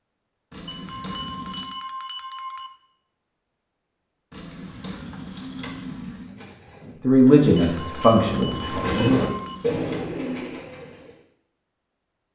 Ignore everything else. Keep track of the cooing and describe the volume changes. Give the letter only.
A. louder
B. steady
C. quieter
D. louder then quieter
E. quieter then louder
A.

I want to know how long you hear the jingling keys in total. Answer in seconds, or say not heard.
5 s.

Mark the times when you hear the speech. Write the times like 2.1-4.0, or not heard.
7.0-9.2.